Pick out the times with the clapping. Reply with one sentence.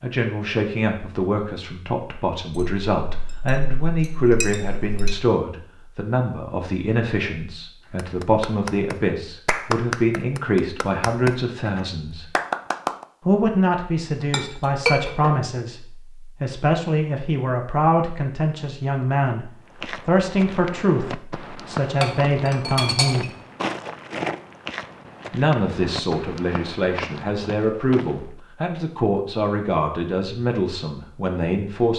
The clapping can be heard from 8.0 to 13.1 s.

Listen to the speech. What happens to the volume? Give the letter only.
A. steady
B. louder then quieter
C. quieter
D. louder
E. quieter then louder
A.